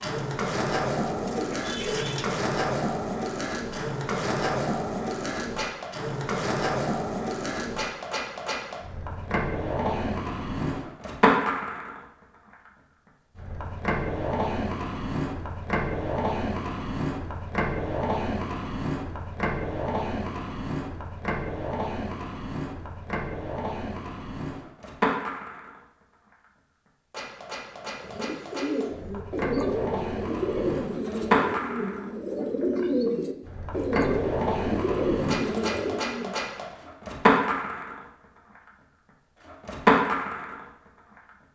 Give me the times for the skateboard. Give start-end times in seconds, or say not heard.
0.0-41.3.